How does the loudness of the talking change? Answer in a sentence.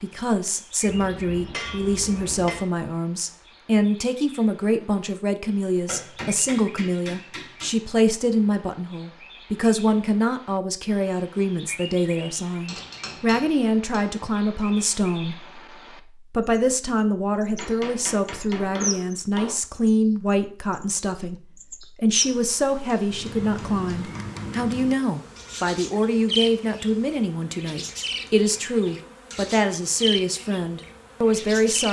The volume of the talking stays about the same.